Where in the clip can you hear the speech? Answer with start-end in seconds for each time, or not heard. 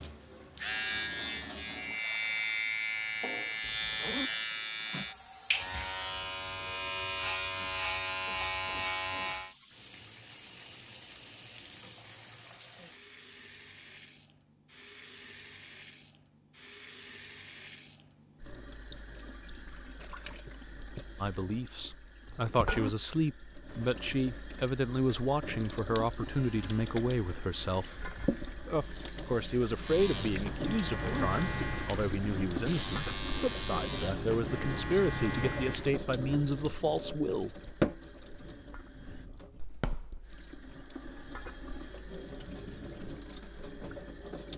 21.2-37.6.